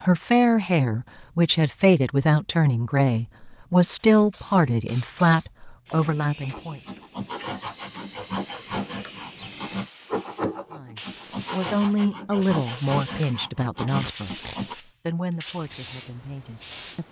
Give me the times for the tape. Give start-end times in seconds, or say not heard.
14.0-14.6.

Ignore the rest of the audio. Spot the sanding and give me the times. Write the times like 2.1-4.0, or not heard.
6.4-14.8.